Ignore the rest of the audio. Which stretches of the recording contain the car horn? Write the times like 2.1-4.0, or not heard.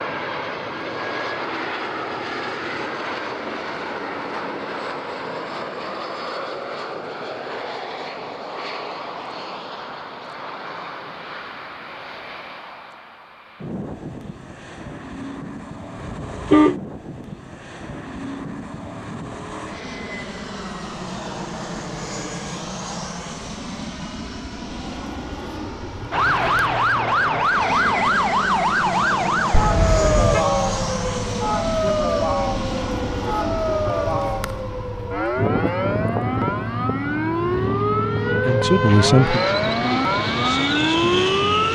16.0-16.8, 29.5-30.4.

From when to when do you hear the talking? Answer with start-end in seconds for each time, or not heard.
38.5-41.7.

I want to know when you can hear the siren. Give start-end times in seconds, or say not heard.
26.1-41.7.